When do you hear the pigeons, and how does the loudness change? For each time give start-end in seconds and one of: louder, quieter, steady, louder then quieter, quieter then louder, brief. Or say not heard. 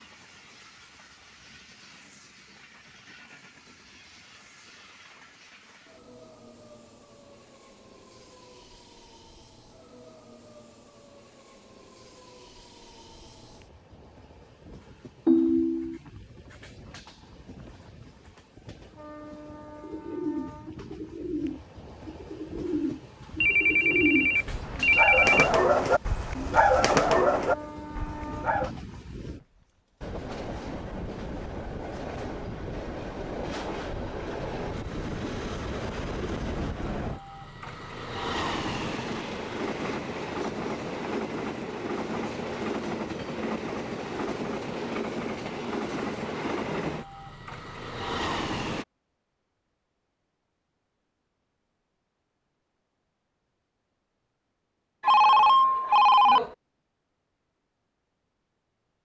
19.8-28.7 louder.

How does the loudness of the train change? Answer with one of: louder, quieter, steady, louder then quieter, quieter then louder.
louder.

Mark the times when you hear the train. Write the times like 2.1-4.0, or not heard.
0.0-48.9.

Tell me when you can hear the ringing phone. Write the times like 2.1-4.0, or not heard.
15.2-15.9, 23.4-25.5, 55.0-56.5.